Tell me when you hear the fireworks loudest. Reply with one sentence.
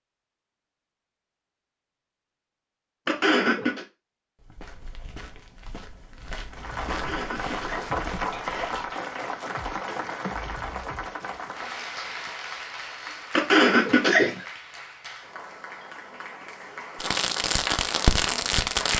The loudest moment of the fireworks is at 18 seconds.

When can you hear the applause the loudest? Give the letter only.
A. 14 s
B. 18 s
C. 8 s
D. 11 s
C.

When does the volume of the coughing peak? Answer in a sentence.
The volume of the coughing peaks at 14 seconds.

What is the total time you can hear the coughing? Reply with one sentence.
The coughing can be heard for 4 seconds in total.